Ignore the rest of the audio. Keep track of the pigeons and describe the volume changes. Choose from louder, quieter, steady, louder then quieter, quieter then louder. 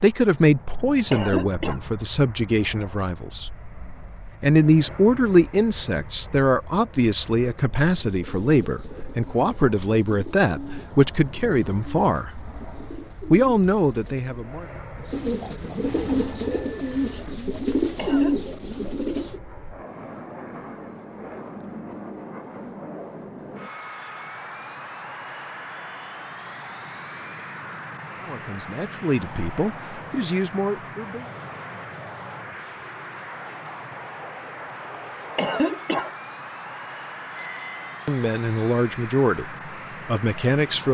louder.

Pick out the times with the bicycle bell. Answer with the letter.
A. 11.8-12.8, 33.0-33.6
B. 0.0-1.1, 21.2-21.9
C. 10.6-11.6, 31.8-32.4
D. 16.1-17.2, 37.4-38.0
D.